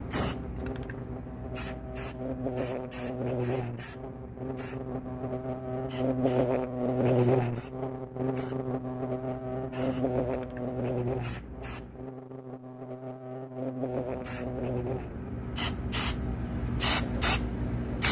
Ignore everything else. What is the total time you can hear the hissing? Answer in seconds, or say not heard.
16 s.